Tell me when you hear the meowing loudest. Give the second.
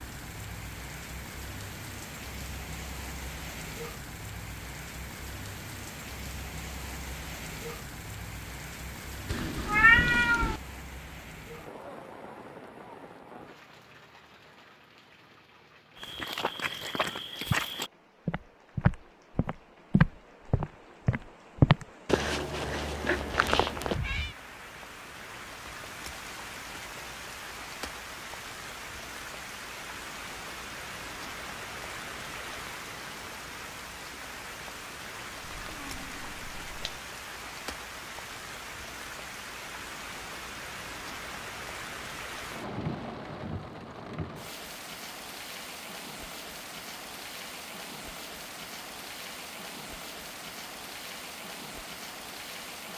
10 s.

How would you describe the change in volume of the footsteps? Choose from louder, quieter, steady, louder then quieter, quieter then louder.
louder then quieter.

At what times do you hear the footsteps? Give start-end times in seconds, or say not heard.
15.9-24.0.